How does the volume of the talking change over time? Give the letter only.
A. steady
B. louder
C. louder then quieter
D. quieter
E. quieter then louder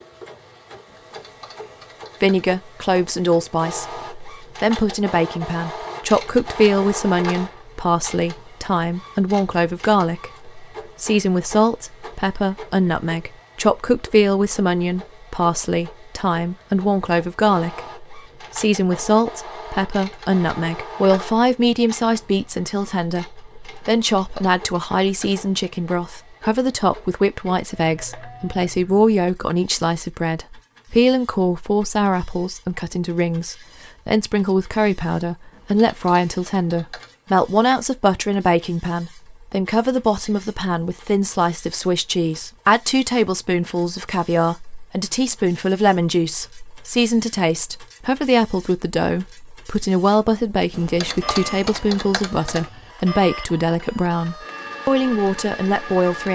A.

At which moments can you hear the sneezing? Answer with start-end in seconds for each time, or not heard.
not heard.